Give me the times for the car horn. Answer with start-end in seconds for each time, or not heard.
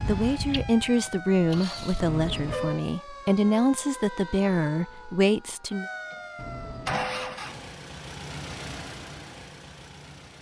2.0-2.9, 6.3-7.4.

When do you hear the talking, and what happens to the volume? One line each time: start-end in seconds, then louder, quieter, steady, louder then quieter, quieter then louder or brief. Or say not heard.
0.0-5.8 steady.